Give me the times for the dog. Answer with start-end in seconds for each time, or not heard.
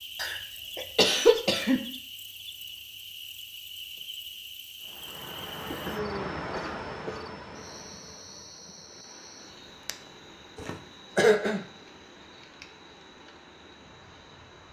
not heard.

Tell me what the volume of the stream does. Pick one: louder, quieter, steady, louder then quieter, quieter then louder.
quieter.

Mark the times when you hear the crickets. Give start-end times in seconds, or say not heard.
0.0-14.6.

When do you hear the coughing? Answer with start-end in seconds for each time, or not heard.
0.1-1.8, 5.7-7.3, 10.6-11.7.